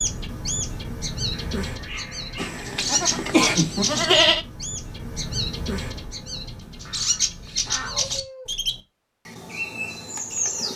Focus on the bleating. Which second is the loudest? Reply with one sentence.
The loudest moment of the bleating is at 4 seconds.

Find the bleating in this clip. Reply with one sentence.
You can hear the bleating from 2.4 to 4.5 s.